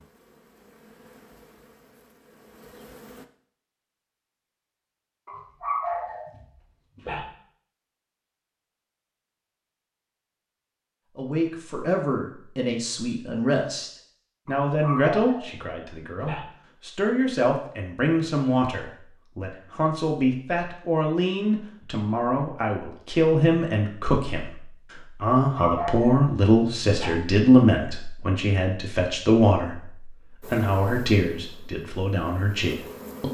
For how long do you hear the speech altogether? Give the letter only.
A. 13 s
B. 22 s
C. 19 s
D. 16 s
B.